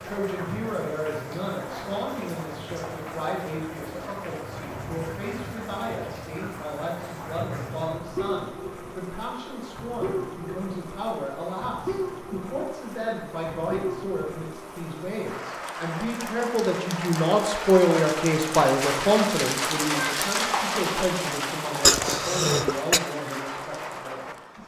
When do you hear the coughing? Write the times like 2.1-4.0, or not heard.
21.8-23.0.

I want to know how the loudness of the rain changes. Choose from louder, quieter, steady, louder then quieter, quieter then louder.
louder.